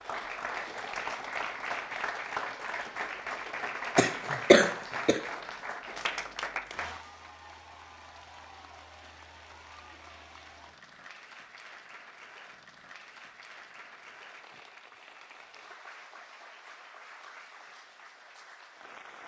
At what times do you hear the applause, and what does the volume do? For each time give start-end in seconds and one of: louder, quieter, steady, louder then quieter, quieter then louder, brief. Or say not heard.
0.0-19.2 quieter.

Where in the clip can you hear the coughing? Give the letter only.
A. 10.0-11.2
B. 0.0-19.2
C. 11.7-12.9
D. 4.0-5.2
D.